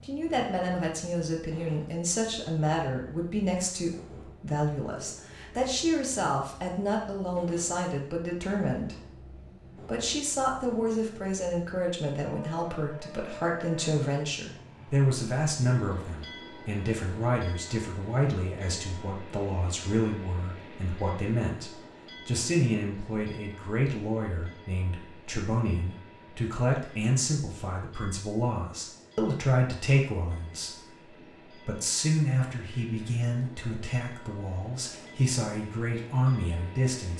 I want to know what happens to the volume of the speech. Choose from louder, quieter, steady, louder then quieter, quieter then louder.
steady.